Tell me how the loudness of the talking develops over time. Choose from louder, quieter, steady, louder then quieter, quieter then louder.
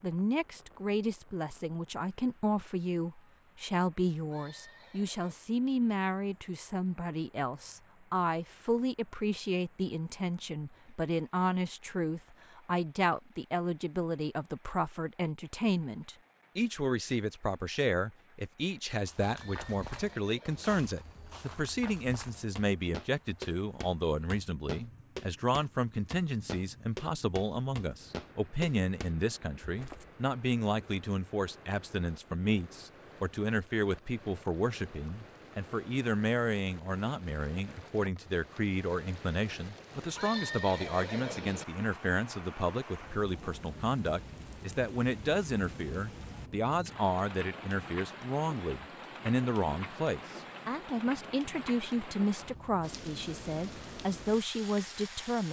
steady.